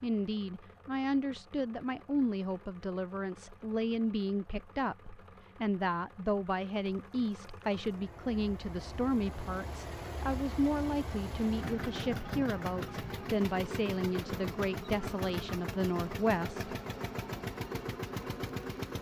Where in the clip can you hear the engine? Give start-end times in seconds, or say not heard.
0.0-18.9.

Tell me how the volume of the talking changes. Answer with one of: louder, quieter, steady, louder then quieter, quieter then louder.
steady.